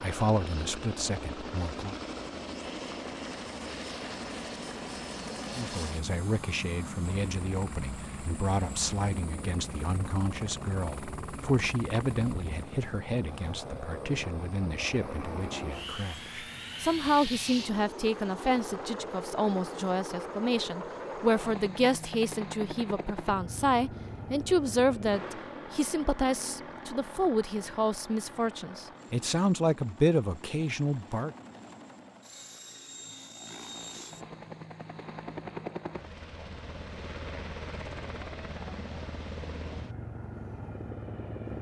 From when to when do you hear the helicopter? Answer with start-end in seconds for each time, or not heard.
0.0-41.5.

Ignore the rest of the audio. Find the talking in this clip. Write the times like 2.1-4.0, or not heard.
0.0-1.9, 5.5-31.3.